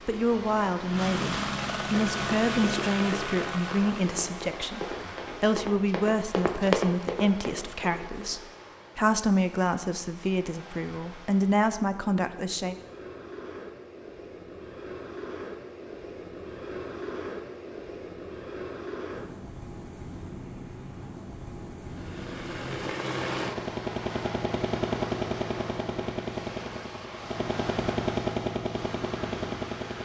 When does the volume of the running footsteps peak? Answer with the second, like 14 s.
7 s.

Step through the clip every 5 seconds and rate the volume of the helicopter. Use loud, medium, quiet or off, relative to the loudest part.
loud, off, off, off, loud, loud.